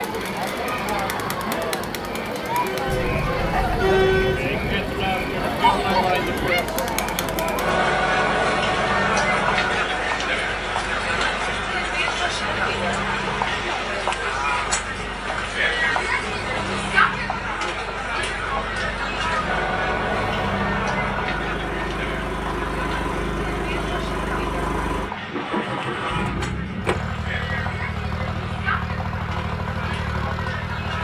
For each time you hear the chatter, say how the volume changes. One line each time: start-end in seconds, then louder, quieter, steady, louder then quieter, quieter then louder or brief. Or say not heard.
0.0-30.9 quieter.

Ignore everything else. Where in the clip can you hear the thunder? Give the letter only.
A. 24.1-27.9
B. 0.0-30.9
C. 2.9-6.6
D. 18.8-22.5
C.